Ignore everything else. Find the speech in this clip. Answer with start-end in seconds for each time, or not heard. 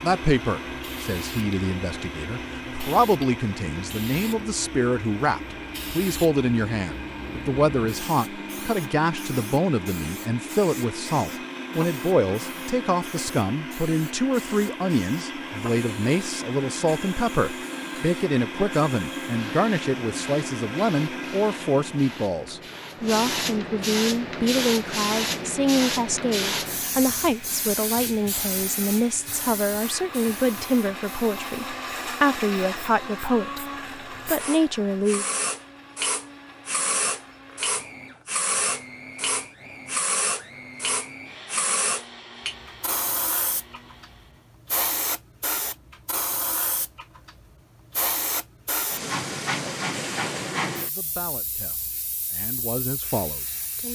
0.0-33.6, 34.2-35.2, 50.9-53.8.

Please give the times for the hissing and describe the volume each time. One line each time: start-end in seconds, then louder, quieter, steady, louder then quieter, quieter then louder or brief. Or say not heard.
0.0-53.8 louder.